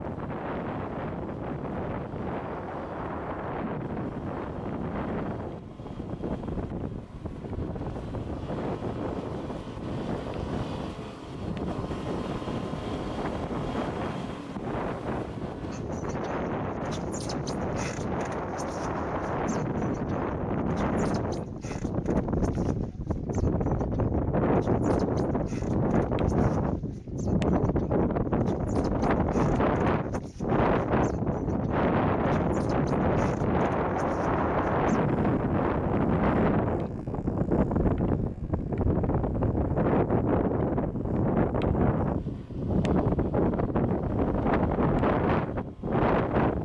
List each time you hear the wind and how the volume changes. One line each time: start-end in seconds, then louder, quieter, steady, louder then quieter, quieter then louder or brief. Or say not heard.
0.0-46.5 louder.